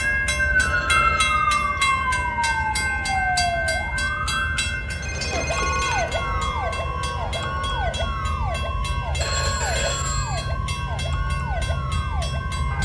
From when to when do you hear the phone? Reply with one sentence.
The phone can be heard from 0.5 to 1.2 s, from 5.0 to 6.1 s and from 9.2 to 10.6 s.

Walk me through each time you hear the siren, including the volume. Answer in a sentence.
You can hear the siren from 0.0 to 12.8 s, getting quieter.